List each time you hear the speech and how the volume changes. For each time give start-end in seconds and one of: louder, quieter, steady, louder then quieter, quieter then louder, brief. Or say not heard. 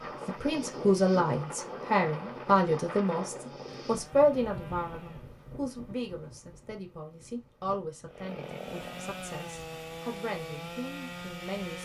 0.2-11.8 quieter.